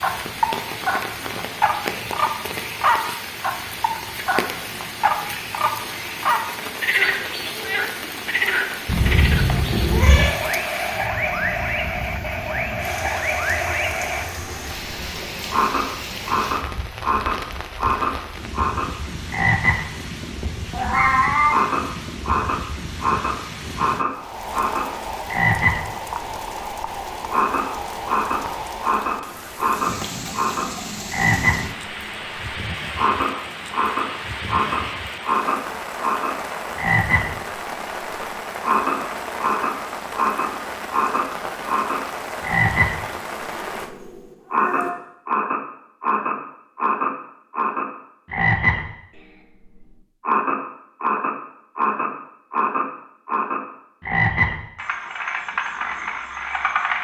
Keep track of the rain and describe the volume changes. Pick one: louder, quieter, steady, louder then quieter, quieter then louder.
steady.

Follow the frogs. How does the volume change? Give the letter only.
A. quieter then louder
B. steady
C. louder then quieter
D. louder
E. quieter
B.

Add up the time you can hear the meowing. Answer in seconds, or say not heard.
4 s.